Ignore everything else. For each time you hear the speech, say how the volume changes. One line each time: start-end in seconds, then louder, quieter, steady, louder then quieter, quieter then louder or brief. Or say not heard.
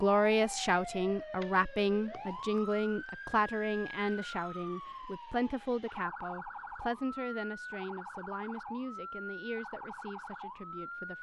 0.0-11.1 quieter.